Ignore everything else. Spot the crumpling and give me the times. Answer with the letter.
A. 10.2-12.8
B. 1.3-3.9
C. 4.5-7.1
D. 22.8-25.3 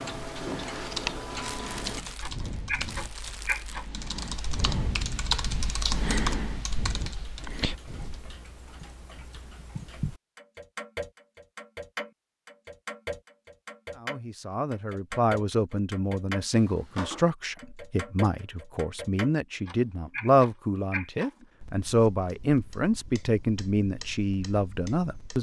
B.